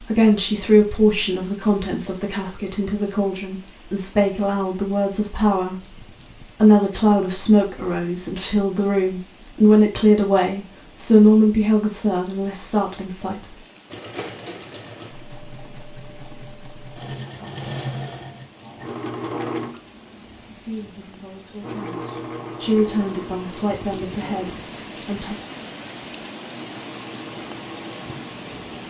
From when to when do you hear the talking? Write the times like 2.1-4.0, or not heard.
0.0-13.6, 20.4-25.4.